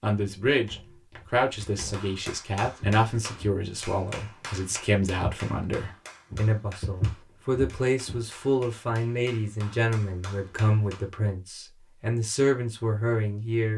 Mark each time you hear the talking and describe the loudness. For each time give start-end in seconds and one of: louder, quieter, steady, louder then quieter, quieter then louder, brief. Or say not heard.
0.0-13.7 steady.